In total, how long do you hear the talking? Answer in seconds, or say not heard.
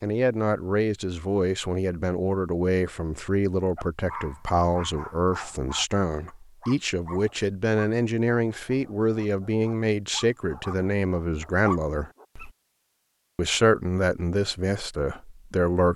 15 s.